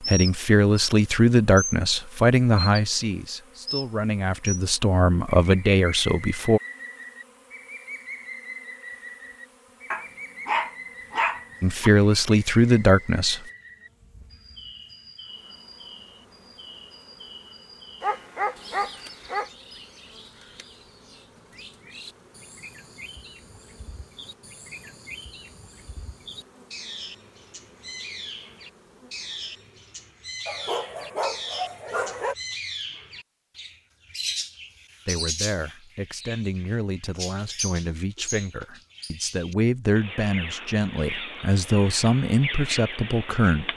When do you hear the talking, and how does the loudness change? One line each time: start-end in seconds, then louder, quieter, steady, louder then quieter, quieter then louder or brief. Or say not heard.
0.0-6.6 quieter then louder
11.6-13.4 brief
35.0-43.7 louder.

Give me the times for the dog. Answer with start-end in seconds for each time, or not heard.
9.9-11.9, 18.0-19.5, 30.4-32.4.